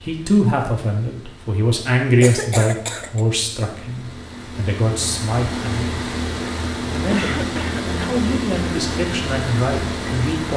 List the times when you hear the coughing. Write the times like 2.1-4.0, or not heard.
2.2-3.2, 7.1-8.1.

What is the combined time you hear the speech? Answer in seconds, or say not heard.
10 s.